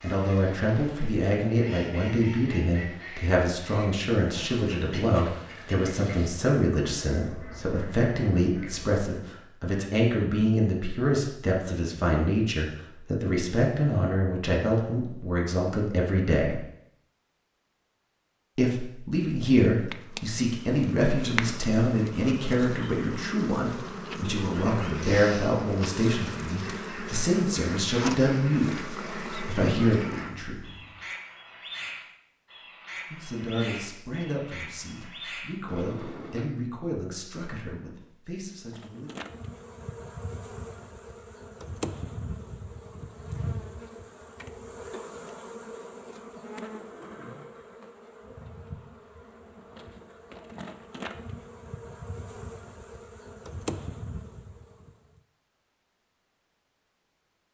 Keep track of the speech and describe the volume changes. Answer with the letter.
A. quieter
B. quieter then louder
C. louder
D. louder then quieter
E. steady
A.